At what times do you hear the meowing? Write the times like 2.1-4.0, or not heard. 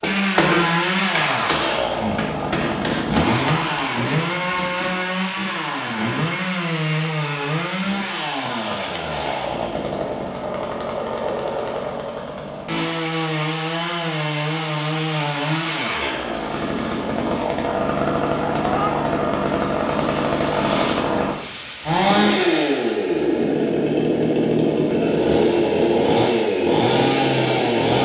18.6-19.1.